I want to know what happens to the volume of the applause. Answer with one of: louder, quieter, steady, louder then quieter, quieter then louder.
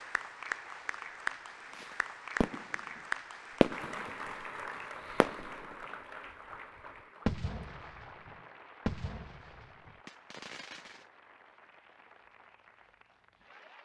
quieter.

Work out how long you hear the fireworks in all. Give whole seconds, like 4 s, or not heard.
6 s.